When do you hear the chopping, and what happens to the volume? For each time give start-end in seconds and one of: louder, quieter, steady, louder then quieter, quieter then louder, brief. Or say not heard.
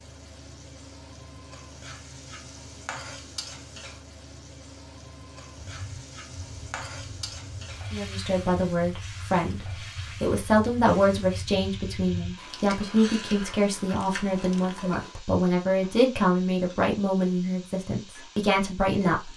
not heard.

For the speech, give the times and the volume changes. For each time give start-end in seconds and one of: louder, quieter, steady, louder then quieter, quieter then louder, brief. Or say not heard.
7.9-19.3 steady.